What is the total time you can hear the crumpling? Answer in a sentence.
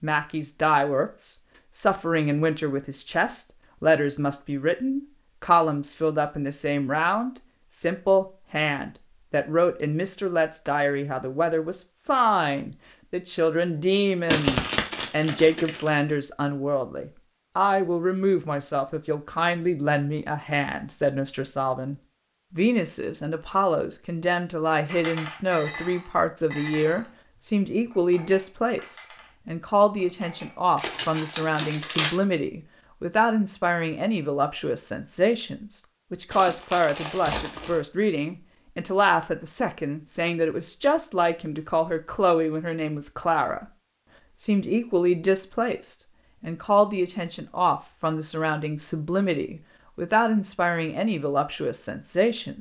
You can hear the crumpling for 5 seconds altogether.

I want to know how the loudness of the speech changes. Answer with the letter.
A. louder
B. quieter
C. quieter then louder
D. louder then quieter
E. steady
E.